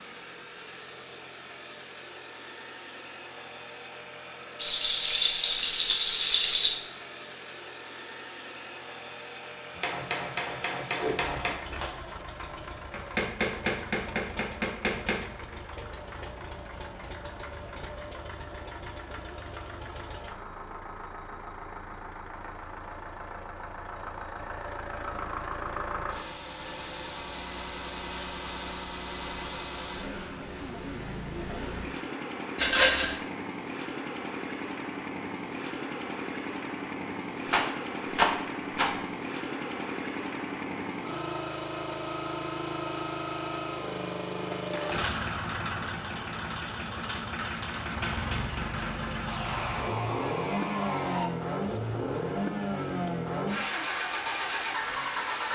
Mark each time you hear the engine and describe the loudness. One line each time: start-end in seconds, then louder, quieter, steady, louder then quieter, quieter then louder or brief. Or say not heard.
0.0-55.5 louder.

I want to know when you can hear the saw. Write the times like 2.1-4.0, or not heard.
49.2-51.3.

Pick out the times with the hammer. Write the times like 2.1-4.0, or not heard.
9.8-15.6.